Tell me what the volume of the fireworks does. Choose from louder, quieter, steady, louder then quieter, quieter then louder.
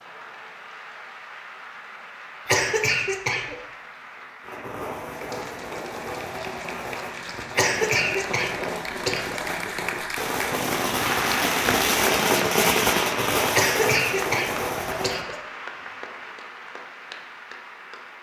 louder.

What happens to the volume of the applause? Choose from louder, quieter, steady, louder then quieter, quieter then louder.
louder then quieter.